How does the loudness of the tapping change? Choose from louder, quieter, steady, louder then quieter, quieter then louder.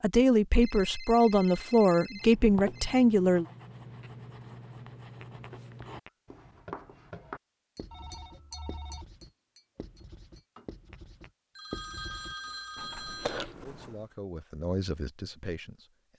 quieter.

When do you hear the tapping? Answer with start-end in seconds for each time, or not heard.
5.2-11.3.